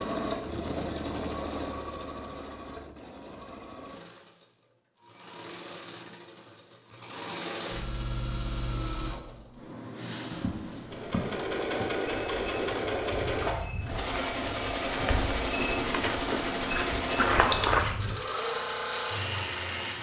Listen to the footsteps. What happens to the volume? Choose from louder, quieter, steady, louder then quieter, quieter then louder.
louder.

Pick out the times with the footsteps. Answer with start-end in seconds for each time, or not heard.
10.3-18.1.